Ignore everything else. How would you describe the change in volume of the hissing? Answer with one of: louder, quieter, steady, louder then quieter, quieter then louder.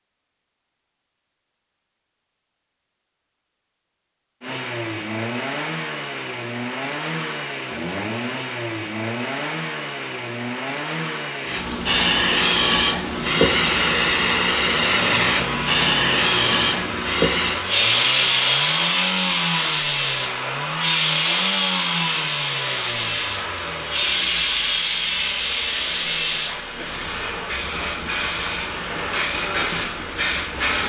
quieter.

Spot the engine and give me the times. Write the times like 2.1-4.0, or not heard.
4.4-30.8.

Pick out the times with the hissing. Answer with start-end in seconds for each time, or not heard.
11.4-30.8.